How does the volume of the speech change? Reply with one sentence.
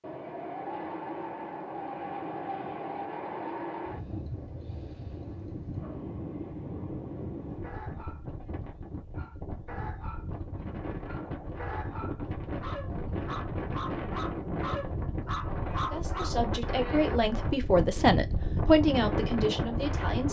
The volume of the speech goes up, then down.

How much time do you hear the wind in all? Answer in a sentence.
You can hear the wind for 20 seconds altogether.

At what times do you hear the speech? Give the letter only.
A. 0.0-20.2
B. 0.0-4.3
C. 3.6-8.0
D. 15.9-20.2
D.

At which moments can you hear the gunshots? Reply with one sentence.
The gunshots can't be heard in this clip.